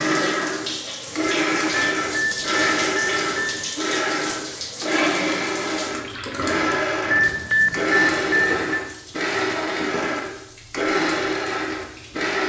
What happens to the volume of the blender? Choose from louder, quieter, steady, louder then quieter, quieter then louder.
steady.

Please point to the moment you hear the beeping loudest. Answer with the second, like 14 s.
8 s.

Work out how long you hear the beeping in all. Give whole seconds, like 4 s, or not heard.
4 s.